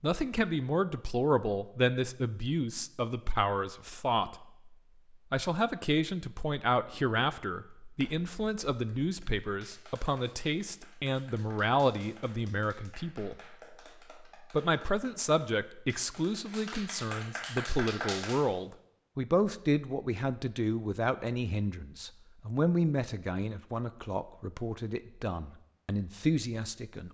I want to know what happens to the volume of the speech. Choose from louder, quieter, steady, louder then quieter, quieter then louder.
steady.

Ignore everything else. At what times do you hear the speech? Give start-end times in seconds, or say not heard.
0.0-4.7, 5.3-13.3, 14.5-27.0.